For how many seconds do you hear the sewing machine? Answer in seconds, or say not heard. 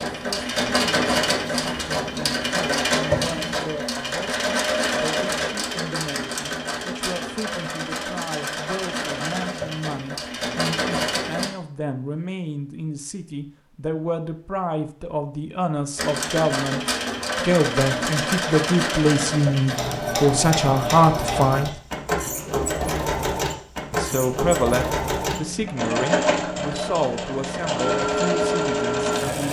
25 s.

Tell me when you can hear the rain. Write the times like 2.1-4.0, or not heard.
not heard.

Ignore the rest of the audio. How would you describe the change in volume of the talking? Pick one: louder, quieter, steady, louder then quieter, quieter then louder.
louder then quieter.